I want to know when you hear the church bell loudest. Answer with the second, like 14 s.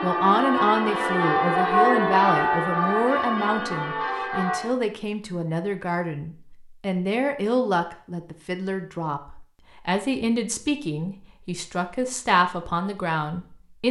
2 s.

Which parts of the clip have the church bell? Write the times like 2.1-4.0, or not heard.
0.0-4.8.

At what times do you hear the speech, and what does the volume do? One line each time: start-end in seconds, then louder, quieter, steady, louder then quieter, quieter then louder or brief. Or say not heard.
0.0-13.8 steady.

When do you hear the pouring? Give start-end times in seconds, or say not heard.
not heard.